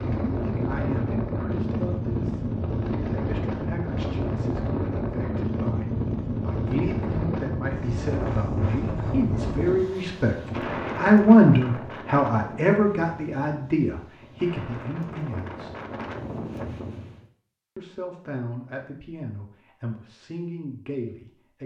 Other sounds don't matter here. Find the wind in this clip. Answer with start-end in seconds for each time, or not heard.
0.0-17.2.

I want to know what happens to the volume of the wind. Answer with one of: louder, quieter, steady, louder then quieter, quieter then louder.
quieter.